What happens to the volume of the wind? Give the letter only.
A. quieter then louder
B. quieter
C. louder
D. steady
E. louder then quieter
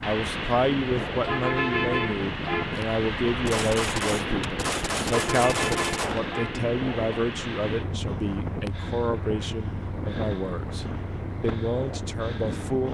D.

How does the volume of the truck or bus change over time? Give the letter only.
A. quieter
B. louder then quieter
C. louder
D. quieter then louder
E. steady
A.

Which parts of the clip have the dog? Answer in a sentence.
The dog can't be heard in this clip.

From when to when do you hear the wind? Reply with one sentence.
The wind can be heard from 0.1 to 12.8 s.